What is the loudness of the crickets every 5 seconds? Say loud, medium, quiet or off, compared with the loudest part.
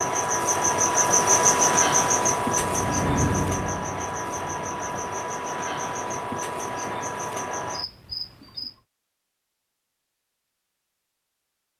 loud, medium, off.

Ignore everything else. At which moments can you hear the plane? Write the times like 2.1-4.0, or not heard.
2.5-5.2.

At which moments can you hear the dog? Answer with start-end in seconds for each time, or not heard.
not heard.